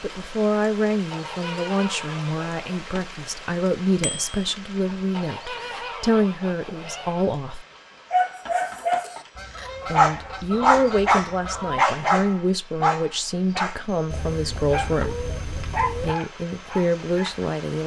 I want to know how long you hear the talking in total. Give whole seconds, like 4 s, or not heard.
15 s.